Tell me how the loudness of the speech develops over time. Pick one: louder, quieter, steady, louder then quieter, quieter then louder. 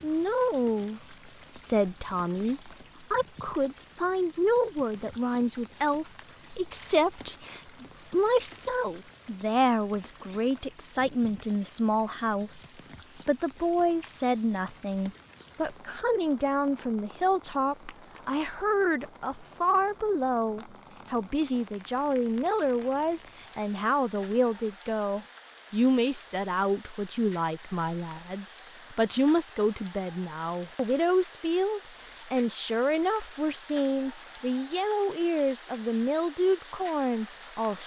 steady.